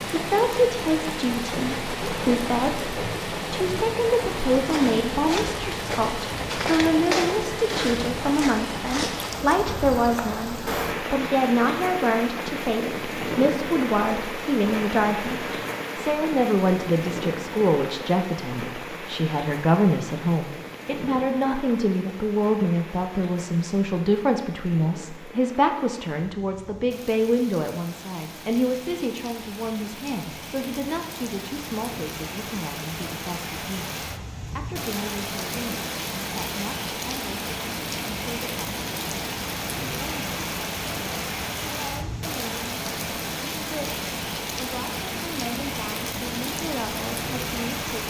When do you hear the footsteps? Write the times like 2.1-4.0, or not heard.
4.5-10.3.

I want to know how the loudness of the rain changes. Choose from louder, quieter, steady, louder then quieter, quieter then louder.
quieter then louder.